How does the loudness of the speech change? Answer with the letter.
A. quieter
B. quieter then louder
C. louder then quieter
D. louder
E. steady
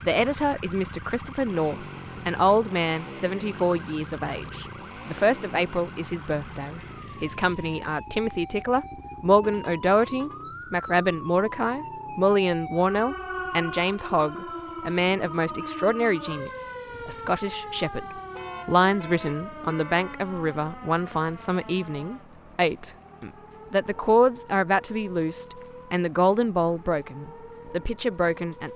E.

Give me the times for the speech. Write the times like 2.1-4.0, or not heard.
0.0-18.1, 18.6-28.7.